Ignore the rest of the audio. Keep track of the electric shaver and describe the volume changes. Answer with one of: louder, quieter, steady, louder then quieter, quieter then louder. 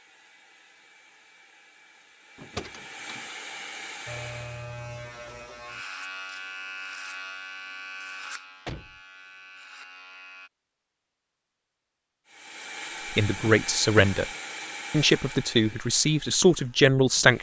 quieter.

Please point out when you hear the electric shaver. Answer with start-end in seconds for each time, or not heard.
4.0-10.5.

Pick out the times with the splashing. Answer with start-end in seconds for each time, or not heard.
not heard.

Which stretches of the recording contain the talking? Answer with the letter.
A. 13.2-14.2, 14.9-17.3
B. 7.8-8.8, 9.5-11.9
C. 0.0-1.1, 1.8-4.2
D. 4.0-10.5
A.